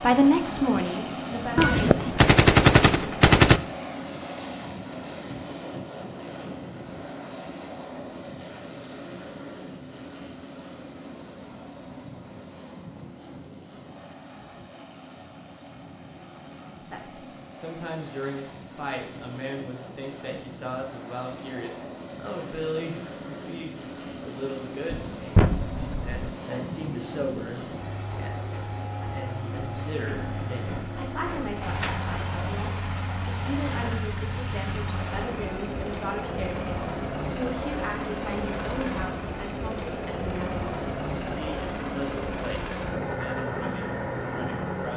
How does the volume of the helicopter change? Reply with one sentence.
The loudness of the helicopter goes down, then up.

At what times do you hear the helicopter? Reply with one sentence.
The helicopter can be heard from 0.0 to 44.9 s.